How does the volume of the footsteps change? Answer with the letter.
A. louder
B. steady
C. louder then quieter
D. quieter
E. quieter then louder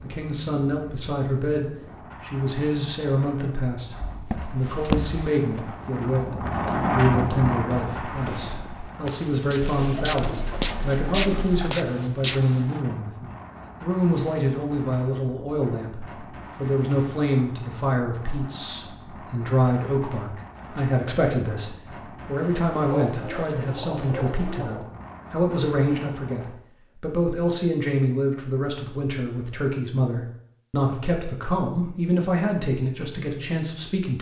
E.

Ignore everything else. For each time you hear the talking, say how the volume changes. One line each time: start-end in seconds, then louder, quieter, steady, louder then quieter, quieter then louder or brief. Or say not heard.
0.0-34.1 steady.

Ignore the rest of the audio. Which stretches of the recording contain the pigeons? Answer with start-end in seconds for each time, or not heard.
9.7-11.7, 22.4-24.9.